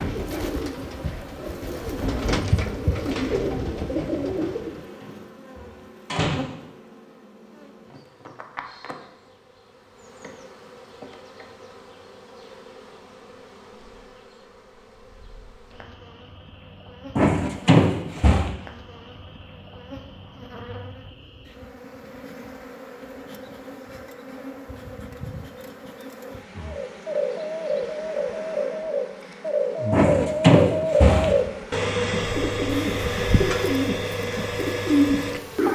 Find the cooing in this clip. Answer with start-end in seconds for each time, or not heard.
0.0-4.8, 26.6-35.6.